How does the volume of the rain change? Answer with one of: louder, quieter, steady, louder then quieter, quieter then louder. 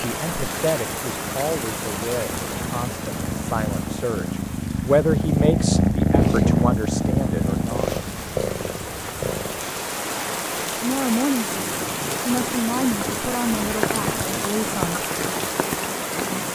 quieter then louder.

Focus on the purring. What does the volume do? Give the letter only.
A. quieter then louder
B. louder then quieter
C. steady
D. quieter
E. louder
B.